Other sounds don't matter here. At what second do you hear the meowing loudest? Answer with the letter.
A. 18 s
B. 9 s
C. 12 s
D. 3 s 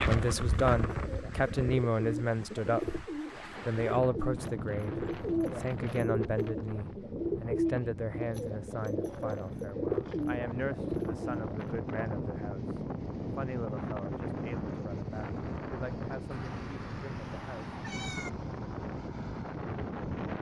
A.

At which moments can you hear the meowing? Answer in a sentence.
The meowing can be heard from 16.3 to 18.3 s.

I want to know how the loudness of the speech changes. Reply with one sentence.
The volume of the speech goes down.